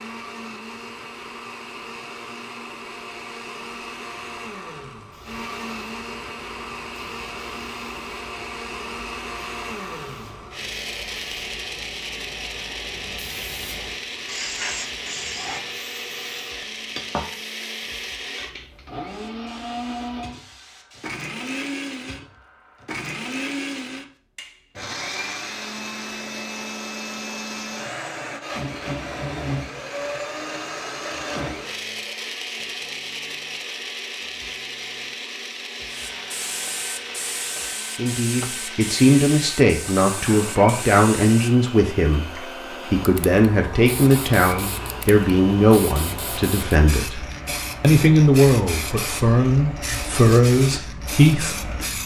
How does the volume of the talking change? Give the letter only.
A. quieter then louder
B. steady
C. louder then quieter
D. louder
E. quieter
B.